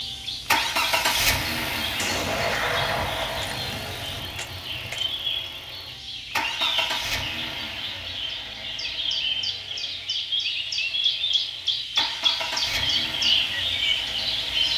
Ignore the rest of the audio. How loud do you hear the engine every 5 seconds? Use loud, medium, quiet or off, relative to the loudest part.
loud, medium, medium.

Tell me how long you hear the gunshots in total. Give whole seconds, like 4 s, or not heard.
3 s.